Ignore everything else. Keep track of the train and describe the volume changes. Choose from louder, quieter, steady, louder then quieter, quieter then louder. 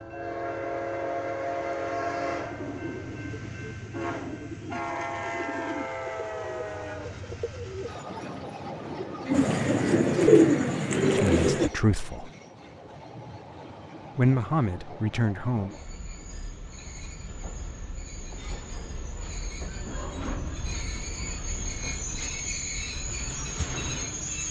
quieter then louder.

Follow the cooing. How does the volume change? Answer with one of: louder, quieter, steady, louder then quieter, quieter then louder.
louder.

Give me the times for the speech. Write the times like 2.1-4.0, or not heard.
11.2-12.3, 14.2-15.7.